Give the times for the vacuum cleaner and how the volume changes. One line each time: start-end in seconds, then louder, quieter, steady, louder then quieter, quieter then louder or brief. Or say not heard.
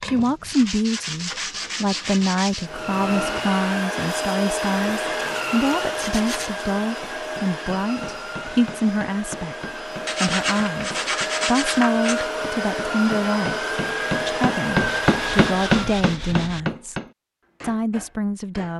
2.5-16.1 quieter then louder.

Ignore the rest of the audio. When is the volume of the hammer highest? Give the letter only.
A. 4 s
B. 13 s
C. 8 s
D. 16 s
D.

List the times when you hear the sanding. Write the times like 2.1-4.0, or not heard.
0.0-2.7, 5.2-6.7, 10.1-12.3, 14.8-16.8.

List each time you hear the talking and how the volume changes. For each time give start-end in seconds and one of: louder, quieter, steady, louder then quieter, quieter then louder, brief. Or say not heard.
0.0-9.6 steady
10.2-17.0 steady
17.6-18.7 brief.